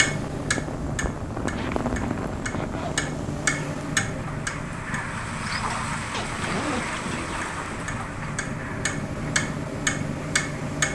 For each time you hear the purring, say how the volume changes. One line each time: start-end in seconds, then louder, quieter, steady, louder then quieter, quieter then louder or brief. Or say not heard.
0.0-10.8 steady.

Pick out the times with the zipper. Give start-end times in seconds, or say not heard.
1.5-3.1, 6.1-7.8.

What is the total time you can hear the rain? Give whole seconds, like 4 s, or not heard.
11 s.